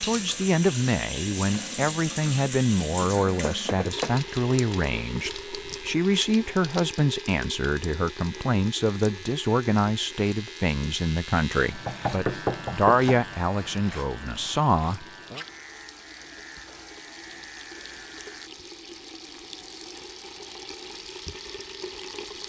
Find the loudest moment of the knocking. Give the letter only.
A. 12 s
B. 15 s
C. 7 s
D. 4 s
A.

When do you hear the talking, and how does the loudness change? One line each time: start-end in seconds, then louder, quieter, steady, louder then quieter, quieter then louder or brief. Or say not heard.
0.0-15.4 steady.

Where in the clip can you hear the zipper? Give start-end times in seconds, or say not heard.
not heard.